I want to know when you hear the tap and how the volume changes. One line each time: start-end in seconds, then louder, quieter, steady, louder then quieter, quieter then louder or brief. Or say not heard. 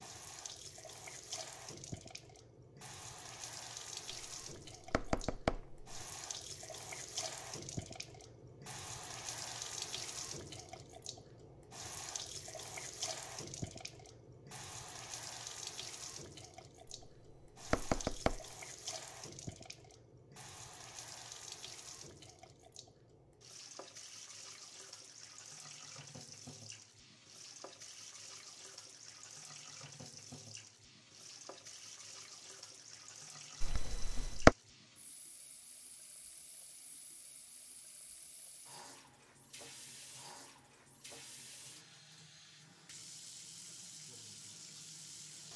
0.0-45.5 quieter.